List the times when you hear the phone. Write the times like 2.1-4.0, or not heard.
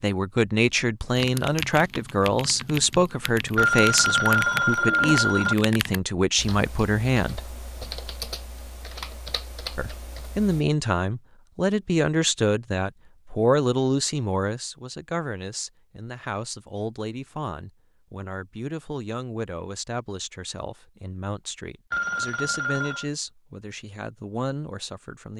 3.5-5.5, 21.9-23.1.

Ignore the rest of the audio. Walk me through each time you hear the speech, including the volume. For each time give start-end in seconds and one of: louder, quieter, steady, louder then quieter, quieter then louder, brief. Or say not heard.
0.0-7.4 steady
9.8-25.3 quieter.